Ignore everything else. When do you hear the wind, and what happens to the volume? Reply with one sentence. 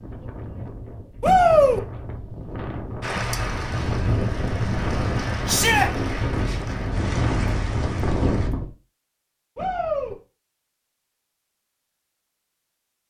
You can hear the wind from 0.0 to 8.7 s, getting louder.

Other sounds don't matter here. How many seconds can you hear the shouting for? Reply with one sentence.
You can hear the shouting for 2 seconds altogether.